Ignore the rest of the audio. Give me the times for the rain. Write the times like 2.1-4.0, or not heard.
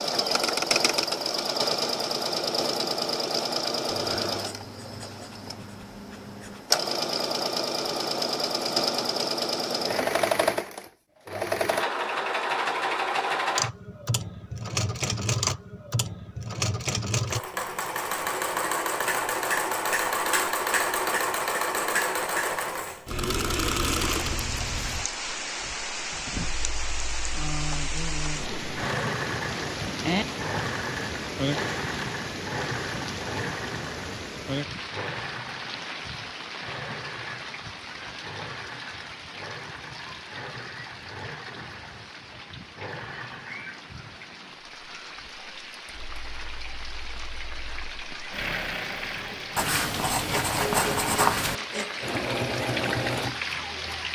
23.9-54.0.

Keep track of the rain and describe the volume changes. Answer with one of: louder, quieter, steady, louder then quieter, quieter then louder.
quieter then louder.